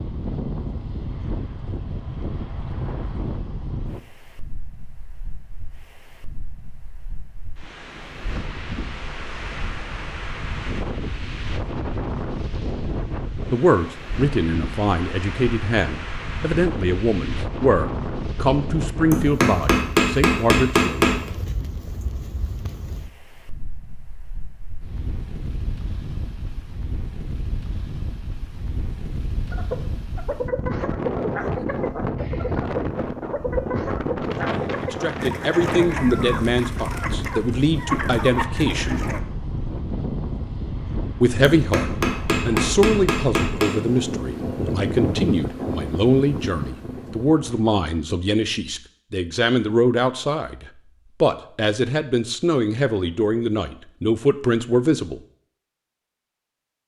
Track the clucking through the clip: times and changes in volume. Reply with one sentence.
You can hear the clucking from 29.5 to 39.2 s, at a steady volume.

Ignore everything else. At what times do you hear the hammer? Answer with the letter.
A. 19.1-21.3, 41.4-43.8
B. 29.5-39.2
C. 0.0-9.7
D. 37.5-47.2
A.